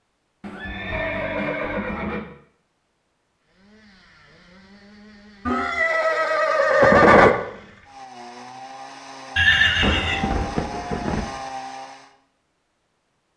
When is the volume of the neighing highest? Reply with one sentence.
The loudest moment of the neighing is at 7 seconds.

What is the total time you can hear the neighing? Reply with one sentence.
The neighing can be heard for 5 seconds in total.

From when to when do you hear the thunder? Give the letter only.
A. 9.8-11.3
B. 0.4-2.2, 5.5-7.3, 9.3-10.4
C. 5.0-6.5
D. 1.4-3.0
A.